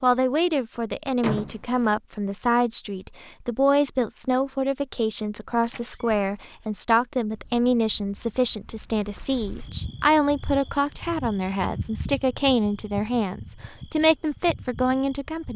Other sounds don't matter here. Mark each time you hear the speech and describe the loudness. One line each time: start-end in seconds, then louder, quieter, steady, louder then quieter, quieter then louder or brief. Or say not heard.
0.0-15.5 steady.